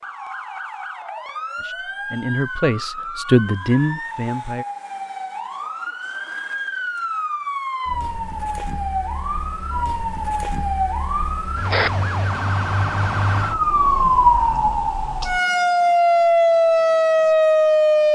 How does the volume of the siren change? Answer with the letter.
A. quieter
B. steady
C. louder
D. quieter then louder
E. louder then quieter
C.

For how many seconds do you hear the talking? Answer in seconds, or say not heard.
3 s.